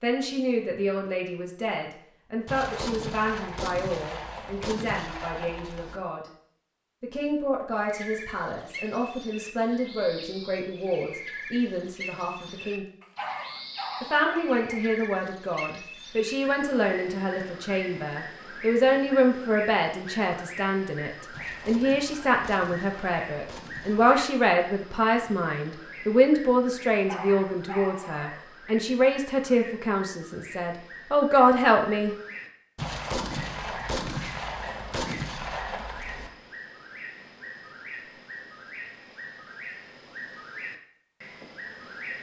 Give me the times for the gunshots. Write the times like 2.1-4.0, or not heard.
2.5-6.0, 21.3-24.2, 32.8-36.3.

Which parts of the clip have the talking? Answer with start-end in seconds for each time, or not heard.
0.0-6.2, 7.0-12.8, 14.0-32.1.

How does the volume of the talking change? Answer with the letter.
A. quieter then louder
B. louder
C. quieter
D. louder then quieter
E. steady
B.